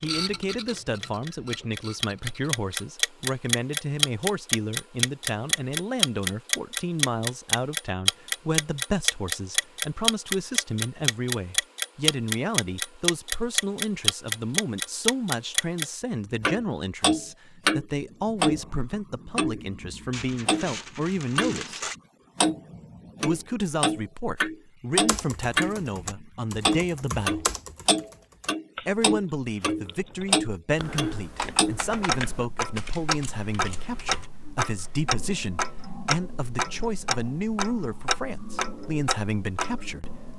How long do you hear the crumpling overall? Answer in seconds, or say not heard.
2 s.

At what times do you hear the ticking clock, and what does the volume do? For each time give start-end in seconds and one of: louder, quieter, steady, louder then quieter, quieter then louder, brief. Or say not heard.
0.0-21.7 steady
22.4-40.3 quieter.